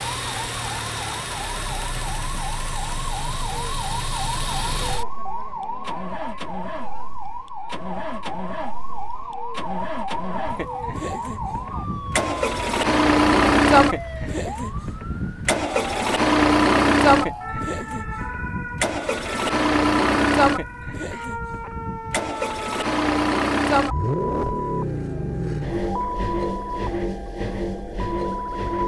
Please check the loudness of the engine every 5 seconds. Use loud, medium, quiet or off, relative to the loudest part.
medium, quiet, loud, loud, loud, medium.